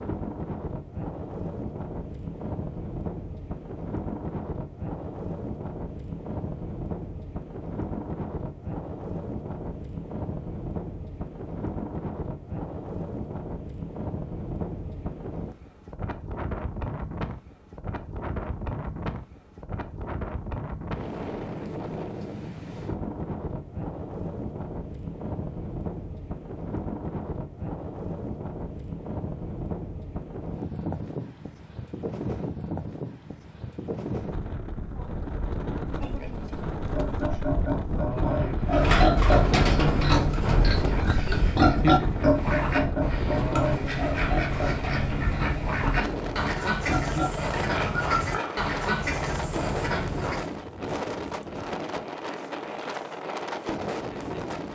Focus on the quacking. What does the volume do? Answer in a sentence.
The loudness of the quacking stays about the same.